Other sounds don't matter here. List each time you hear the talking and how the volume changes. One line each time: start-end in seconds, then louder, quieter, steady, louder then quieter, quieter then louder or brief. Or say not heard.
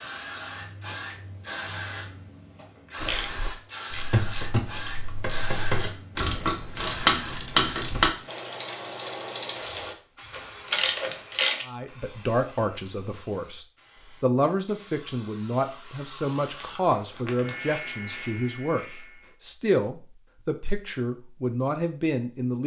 11.7-22.6 steady.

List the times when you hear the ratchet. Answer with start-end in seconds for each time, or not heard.
3.0-11.7.